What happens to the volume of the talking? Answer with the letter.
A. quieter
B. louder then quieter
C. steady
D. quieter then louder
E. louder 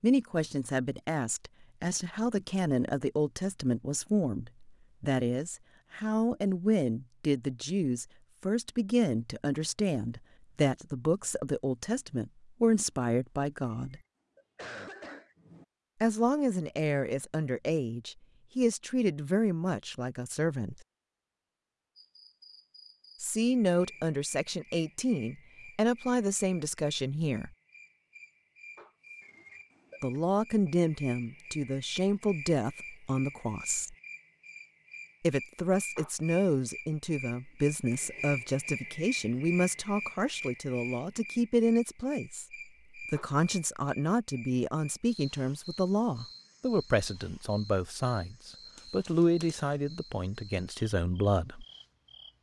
C.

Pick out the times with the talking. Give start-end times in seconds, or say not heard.
0.0-14.0, 16.0-20.8, 23.2-27.5, 30.0-34.0, 35.2-51.6.